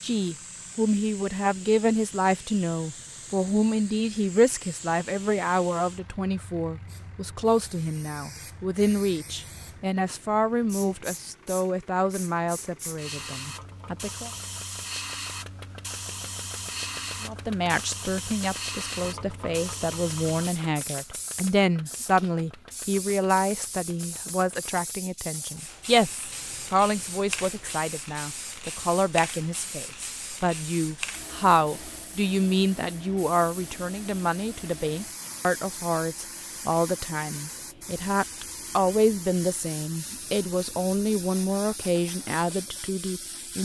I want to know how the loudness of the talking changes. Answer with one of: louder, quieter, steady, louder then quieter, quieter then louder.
steady.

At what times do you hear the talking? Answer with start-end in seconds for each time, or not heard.
0.0-14.3, 17.2-43.6.